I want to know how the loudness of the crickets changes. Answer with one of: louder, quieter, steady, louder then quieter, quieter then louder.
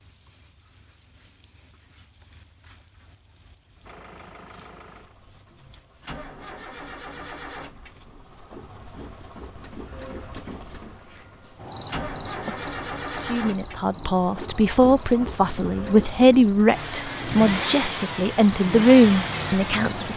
quieter.